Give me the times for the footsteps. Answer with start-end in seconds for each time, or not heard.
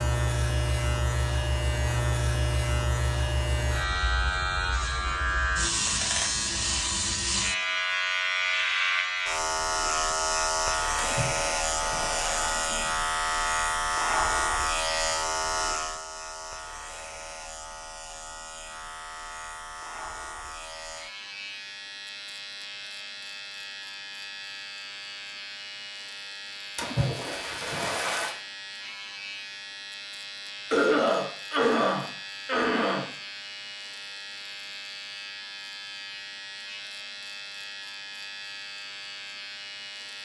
not heard.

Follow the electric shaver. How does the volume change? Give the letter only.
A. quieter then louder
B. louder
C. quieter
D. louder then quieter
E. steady
C.